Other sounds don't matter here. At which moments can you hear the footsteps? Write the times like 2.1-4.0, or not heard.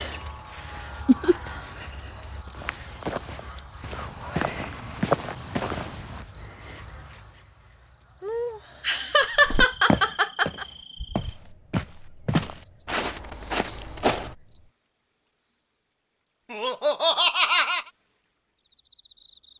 2.5-6.2, 9.3-14.3.